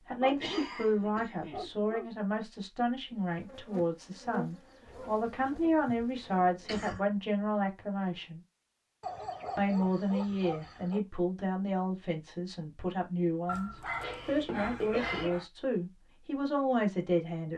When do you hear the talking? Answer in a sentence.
The talking can be heard from 0.1 to 8.4 s and from 9.6 to 17.5 s.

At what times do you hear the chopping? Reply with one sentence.
You can't hear the chopping here.